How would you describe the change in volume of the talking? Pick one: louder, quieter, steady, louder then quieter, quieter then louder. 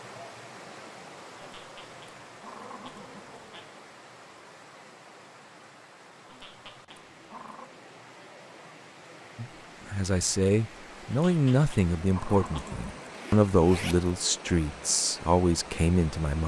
steady.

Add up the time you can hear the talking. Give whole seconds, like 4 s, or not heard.
7 s.